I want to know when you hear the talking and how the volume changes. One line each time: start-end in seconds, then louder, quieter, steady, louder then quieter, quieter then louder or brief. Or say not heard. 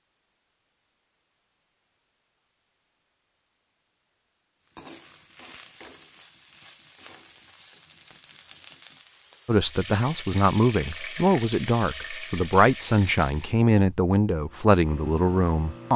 9.4-15.9 steady.